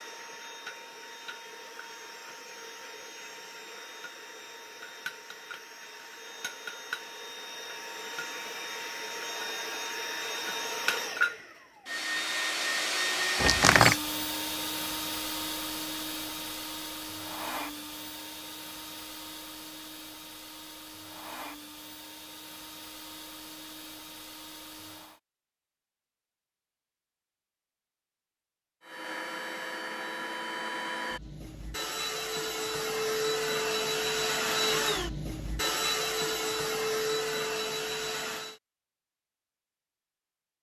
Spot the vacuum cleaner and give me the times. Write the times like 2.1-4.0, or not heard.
0.0-25.2, 28.8-38.6.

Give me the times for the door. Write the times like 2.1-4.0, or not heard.
13.4-14.0.